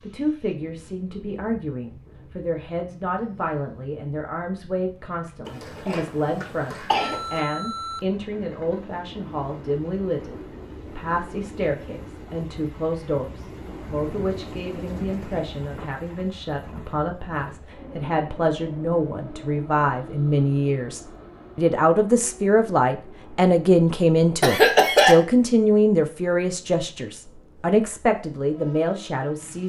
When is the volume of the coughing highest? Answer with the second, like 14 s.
25 s.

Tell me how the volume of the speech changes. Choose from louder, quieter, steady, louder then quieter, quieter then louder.
louder.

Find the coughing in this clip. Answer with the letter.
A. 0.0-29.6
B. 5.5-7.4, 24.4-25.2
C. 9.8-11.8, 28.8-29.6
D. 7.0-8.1
B.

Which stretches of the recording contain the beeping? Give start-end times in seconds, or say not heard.
7.0-8.1.